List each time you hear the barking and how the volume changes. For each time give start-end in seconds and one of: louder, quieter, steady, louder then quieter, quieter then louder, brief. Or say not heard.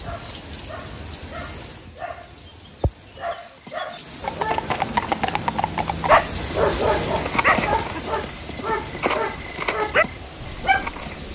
0.0-11.2 louder.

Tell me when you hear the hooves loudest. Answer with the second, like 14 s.
5 s.